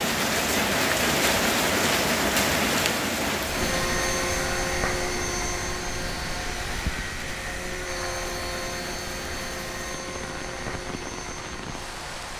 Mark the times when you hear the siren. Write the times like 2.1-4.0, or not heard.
not heard.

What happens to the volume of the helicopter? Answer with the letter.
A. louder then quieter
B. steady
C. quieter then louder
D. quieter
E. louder
D.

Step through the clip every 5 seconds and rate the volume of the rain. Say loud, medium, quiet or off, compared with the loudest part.
loud, quiet, quiet.